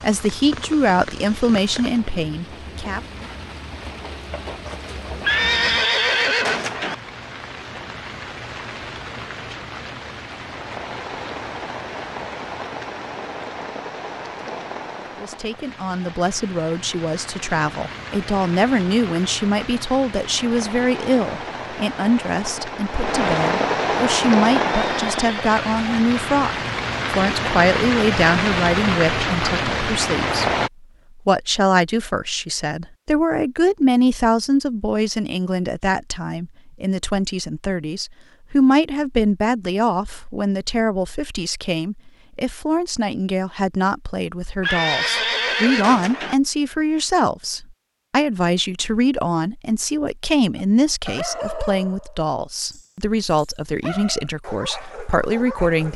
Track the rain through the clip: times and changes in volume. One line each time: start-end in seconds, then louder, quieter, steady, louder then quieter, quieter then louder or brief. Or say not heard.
0.0-30.7 louder.